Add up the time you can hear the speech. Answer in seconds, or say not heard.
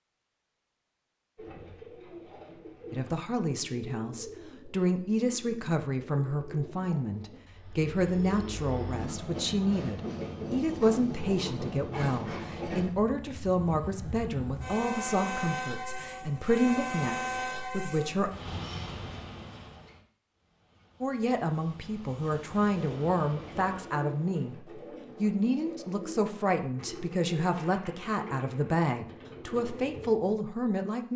25 s.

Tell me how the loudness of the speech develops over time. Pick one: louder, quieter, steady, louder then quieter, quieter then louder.
steady.